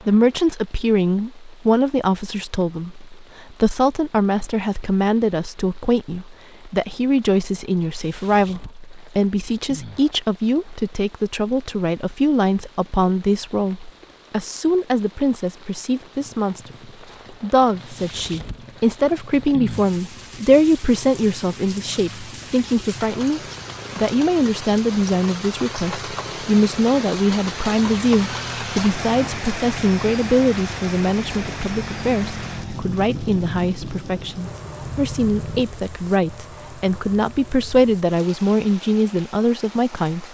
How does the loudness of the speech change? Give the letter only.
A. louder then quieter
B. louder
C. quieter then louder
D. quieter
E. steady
E.